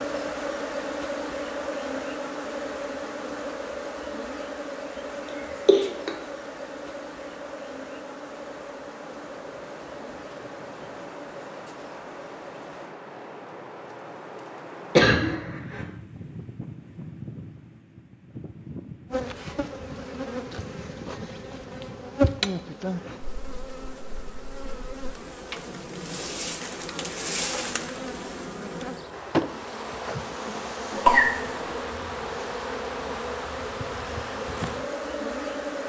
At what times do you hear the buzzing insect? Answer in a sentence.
The buzzing insect can be heard from 0.0 to 12.9 s and from 19.1 to 35.8 s.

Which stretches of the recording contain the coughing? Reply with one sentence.
The coughing can be heard from 5.7 to 6.2 s, from 14.9 to 15.8 s and from 30.9 to 31.8 s.